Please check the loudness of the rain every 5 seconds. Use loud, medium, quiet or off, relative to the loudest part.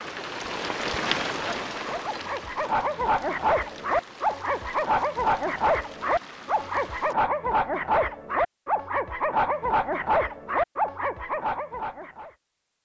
loud, medium, off.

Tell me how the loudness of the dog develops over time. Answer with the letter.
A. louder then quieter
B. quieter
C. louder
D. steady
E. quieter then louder
D.